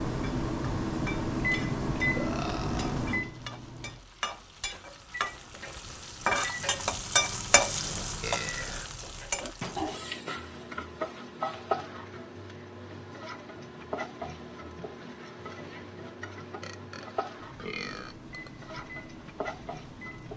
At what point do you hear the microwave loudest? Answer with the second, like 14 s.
2 s.